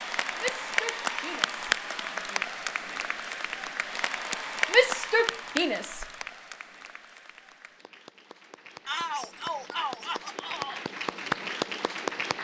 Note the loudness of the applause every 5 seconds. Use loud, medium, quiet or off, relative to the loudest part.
loud, medium, loud.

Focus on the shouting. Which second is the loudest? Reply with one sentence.
The loudest moment of the shouting is at 5 seconds.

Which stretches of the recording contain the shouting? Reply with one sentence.
You can hear the shouting from 0.3 to 2.5 s, from 4.7 to 6.0 s and from 8.8 to 10.8 s.